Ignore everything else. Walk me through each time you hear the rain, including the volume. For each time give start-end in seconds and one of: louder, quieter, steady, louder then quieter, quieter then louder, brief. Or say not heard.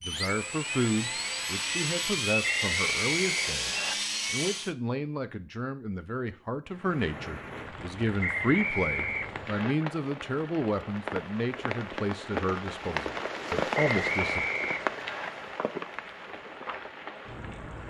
6.7-17.8 louder then quieter.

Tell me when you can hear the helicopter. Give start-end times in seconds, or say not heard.
0.0-4.8.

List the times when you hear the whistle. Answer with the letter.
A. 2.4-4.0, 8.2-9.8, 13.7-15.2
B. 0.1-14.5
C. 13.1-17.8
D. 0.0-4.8
A.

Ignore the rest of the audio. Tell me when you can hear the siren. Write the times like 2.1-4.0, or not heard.
not heard.